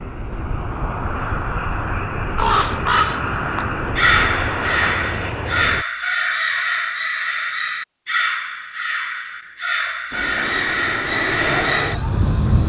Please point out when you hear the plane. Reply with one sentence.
The plane can be heard from 0.0 to 5.8 s and from 10.1 to 12.6 s.